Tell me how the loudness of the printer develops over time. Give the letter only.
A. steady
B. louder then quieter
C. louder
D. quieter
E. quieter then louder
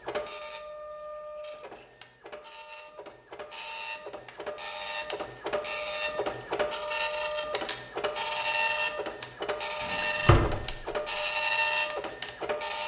C.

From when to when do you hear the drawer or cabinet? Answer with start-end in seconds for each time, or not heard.
9.8-10.8.